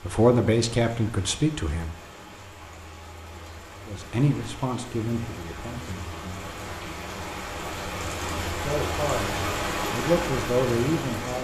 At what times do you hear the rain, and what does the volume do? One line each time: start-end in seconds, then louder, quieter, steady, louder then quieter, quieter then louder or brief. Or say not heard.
0.0-11.4 louder.